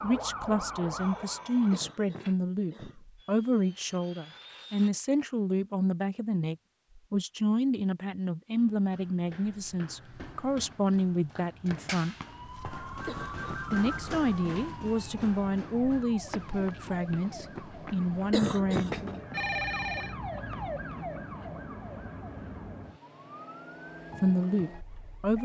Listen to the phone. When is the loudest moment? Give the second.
20 s.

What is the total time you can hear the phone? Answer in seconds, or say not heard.
4 s.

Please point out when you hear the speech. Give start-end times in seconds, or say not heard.
0.0-12.2, 13.7-19.2, 24.2-25.4.